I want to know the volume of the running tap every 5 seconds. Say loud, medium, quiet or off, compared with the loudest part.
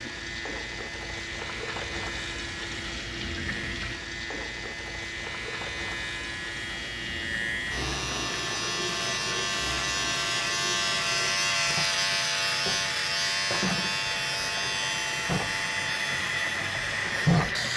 medium, medium, medium, loud.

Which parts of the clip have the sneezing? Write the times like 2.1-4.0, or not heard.
not heard.